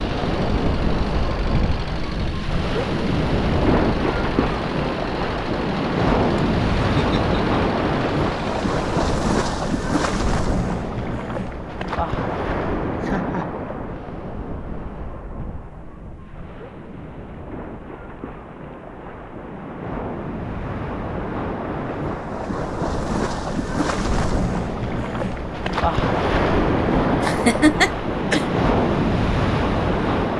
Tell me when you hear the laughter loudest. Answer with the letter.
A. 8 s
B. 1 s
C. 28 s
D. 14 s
C.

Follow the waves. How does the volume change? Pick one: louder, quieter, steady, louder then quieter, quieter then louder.
quieter then louder.